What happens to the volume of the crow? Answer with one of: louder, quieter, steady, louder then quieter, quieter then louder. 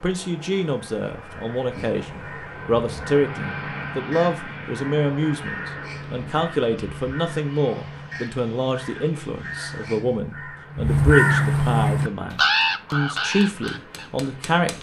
louder.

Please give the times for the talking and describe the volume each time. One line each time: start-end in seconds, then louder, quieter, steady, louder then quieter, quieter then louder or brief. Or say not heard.
0.0-14.7 steady.